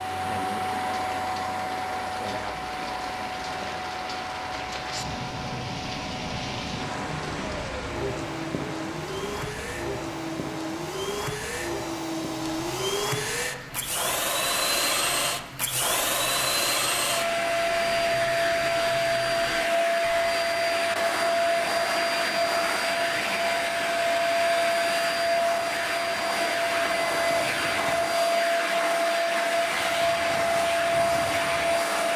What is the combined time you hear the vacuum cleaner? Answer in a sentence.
You can hear the vacuum cleaner for 32 seconds altogether.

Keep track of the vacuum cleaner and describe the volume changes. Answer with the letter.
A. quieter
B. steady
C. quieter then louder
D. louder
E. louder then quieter
D.